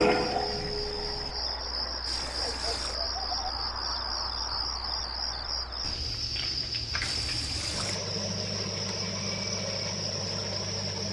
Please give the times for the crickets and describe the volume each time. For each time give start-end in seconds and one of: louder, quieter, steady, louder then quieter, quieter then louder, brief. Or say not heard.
0.0-11.0 steady.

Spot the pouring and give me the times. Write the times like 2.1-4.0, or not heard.
2.0-3.0, 7.0-8.0.